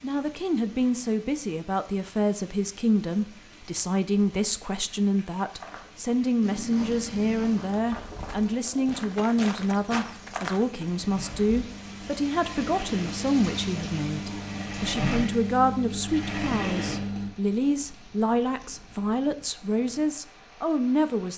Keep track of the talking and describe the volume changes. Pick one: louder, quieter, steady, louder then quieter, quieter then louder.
steady.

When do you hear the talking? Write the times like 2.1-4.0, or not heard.
0.0-21.3.